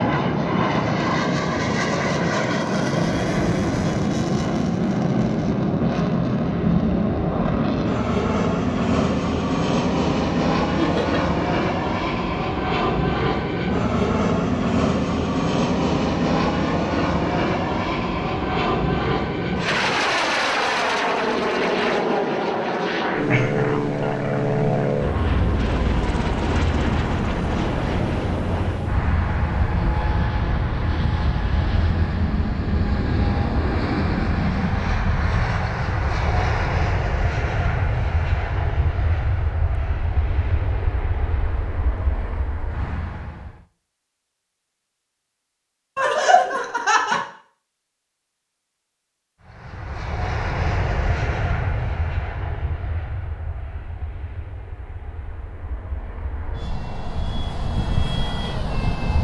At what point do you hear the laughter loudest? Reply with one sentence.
The volume of the laughter peaks at 46 seconds.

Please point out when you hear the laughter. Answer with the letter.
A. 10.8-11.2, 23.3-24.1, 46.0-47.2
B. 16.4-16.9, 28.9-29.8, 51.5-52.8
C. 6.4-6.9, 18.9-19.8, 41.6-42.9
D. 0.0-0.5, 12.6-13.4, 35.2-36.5
A.